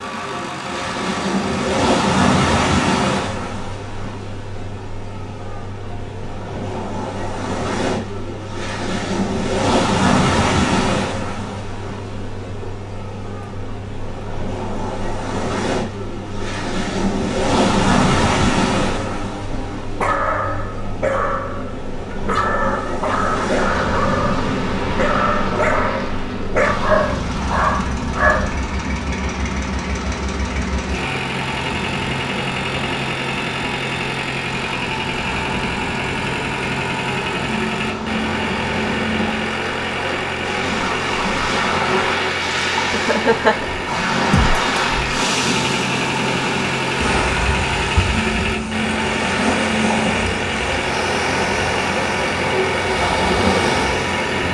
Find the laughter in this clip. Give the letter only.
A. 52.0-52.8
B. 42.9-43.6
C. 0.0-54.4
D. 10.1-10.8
B.